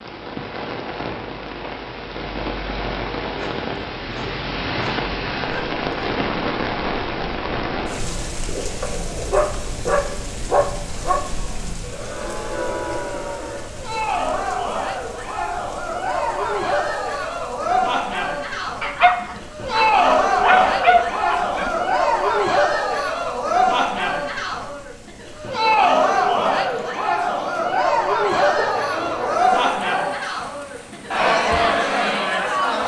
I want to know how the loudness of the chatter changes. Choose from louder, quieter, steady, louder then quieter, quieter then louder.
louder.